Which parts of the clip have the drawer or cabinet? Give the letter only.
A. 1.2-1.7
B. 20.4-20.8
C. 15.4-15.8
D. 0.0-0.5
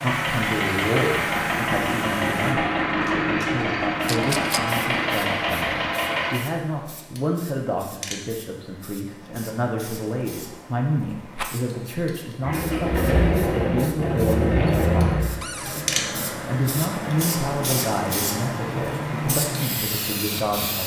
C.